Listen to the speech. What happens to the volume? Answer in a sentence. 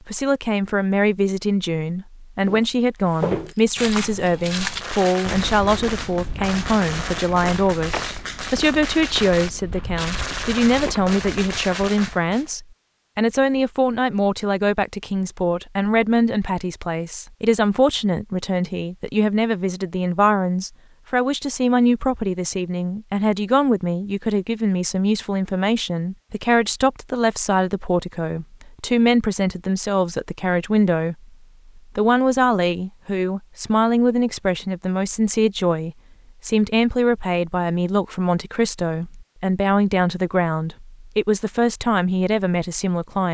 The loudness of the speech stays about the same.